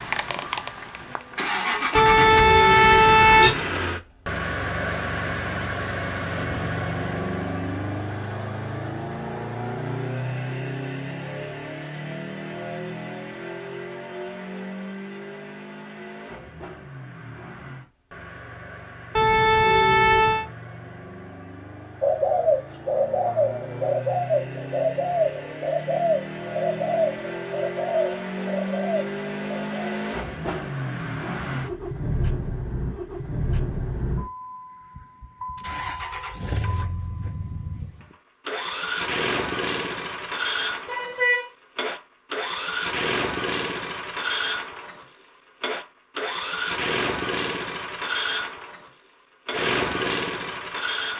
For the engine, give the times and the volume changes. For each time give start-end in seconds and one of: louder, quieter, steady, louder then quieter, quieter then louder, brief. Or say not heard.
0.0-51.1 quieter then louder.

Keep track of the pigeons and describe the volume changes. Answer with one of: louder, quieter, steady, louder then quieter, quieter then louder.
quieter.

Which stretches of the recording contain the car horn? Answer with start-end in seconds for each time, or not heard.
1.9-3.6, 19.1-20.4, 40.9-41.5.